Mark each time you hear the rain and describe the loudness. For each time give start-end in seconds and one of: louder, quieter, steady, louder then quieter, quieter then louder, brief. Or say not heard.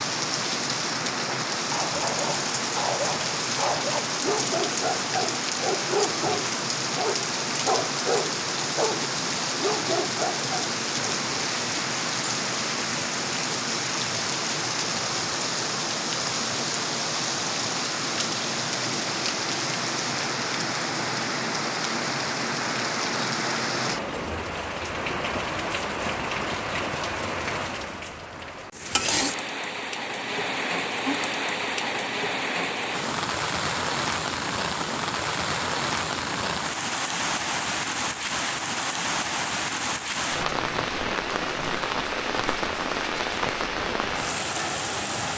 0.0-45.3 steady.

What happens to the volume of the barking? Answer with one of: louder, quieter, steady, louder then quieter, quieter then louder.
steady.